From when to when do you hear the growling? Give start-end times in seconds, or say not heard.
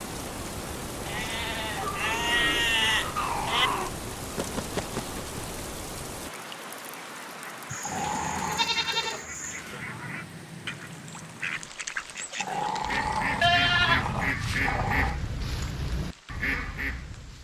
1.8-3.9, 7.8-8.7, 12.3-15.2.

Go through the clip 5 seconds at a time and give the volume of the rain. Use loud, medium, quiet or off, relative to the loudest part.
loud, loud, medium, quiet.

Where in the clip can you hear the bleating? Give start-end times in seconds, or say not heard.
1.1-3.7, 7.7-9.6, 13.4-15.1.